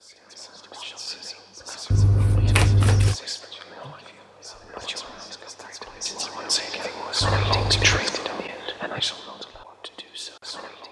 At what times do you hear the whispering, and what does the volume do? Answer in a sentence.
You can hear the whispering from 0.0 to 10.8 s, getting louder then quieter.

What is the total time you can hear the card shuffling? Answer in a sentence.
You can hear the card shuffling for 2 seconds altogether.